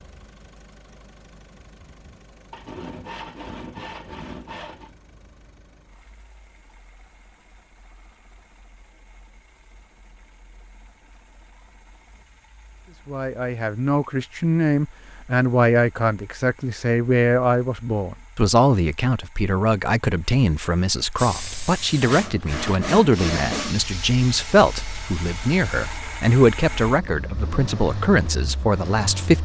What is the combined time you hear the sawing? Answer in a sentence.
The sawing can be heard for 4 seconds in total.